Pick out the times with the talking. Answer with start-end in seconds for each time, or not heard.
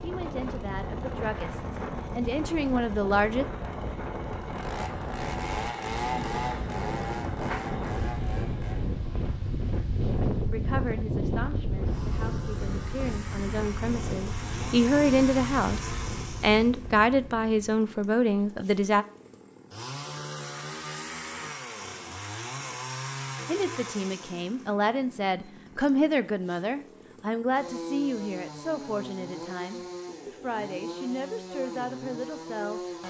0.0-3.5, 10.5-19.1, 23.4-32.8.